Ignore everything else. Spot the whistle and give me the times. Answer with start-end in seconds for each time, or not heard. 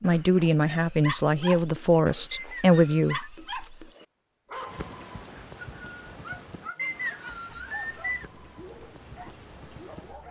2.3-3.3, 6.8-8.3.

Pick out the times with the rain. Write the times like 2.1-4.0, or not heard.
4.7-10.2.